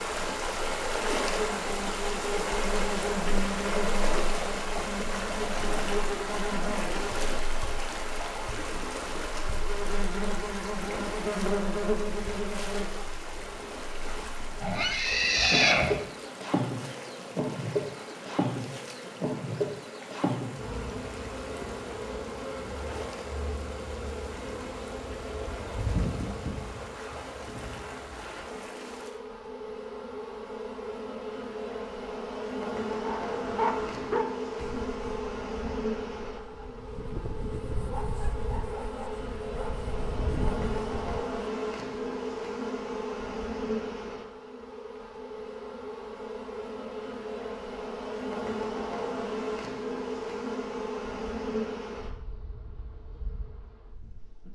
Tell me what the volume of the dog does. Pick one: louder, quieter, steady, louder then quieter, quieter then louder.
quieter then louder.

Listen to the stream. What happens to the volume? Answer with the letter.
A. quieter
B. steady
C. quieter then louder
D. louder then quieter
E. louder
A.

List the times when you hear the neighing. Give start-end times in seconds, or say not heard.
14.6-15.9.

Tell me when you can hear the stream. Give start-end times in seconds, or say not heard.
0.0-29.2.